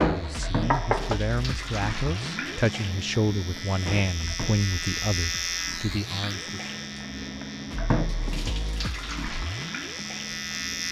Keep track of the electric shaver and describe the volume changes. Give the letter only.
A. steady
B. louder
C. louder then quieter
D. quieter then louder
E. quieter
C.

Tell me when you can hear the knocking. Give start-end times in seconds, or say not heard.
0.2-1.2.